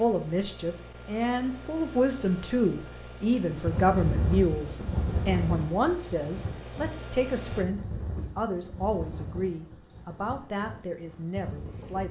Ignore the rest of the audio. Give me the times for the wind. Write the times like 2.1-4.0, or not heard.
3.5-12.0.